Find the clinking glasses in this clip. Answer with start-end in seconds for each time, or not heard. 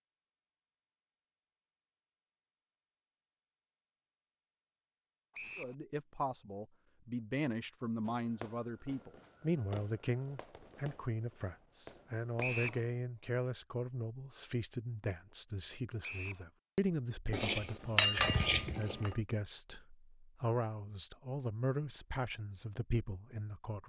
17.3-19.1.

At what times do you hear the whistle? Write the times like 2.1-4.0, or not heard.
5.3-5.8, 12.4-12.8, 16.0-16.4.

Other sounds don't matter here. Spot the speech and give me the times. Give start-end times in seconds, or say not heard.
5.5-23.8.